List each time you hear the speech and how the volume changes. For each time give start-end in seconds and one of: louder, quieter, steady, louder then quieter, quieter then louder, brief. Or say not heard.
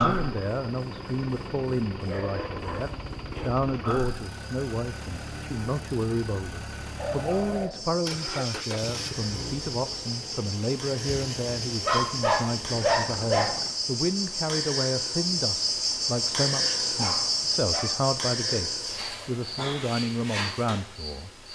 0.0-21.3 steady.